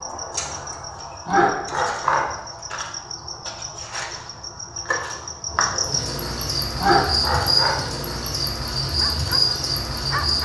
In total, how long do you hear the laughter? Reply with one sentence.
You can hear the laughter for 2 seconds altogether.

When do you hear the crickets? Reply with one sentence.
The crickets can be heard from 0.0 to 10.4 s.